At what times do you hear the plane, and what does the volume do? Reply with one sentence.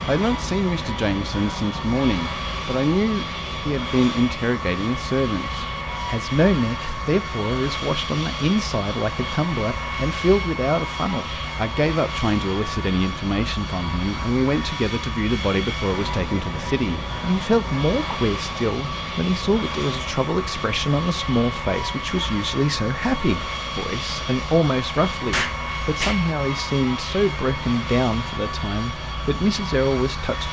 You can hear the plane from 0.0 to 30.4 s, at a steady volume.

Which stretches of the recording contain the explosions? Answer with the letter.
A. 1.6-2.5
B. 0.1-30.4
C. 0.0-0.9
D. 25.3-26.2
D.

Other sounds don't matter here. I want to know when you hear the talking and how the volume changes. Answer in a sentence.
The talking can be heard from 0.1 to 30.4 s, at a steady volume.